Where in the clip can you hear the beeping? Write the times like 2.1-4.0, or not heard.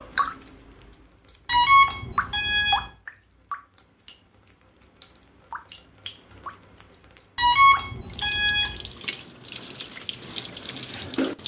1.4-2.9, 7.3-8.8.